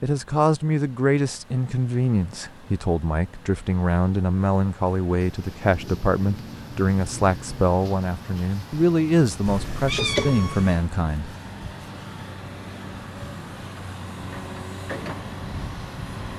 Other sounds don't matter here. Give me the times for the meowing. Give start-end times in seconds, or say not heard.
9.4-10.8.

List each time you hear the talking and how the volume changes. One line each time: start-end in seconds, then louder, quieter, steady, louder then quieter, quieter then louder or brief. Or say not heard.
0.0-11.3 steady.